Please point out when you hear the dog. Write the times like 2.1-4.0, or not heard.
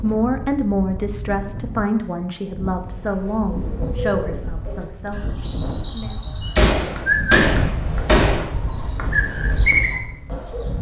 not heard.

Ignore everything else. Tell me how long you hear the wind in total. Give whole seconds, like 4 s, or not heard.
11 s.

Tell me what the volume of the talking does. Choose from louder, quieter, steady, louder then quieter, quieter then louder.
quieter.